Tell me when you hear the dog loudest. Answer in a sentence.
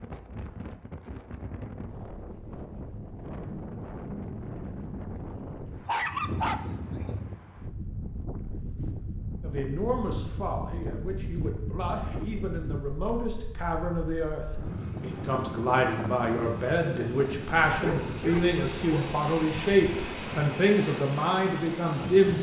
The volume of the dog peaks at 6 seconds.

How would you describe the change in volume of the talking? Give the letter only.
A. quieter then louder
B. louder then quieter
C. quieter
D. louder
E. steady
D.